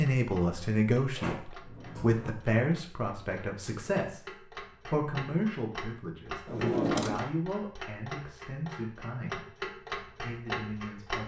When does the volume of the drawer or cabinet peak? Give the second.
7 s.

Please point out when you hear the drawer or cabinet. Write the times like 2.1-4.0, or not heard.
1.1-2.4, 6.5-7.2.